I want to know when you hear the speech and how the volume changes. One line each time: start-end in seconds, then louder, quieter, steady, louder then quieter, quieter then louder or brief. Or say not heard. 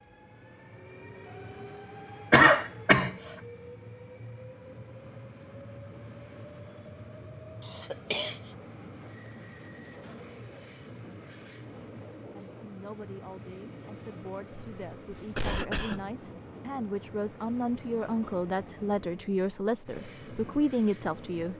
12.3-21.5 louder.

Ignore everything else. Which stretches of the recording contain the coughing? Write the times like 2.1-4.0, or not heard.
2.3-3.1, 7.7-8.4, 14.5-16.1.